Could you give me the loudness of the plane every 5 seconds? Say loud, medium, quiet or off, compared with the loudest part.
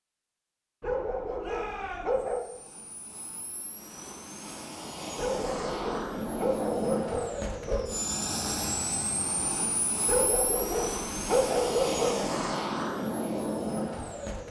quiet, loud, loud.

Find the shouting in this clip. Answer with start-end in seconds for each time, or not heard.
1.4-2.2.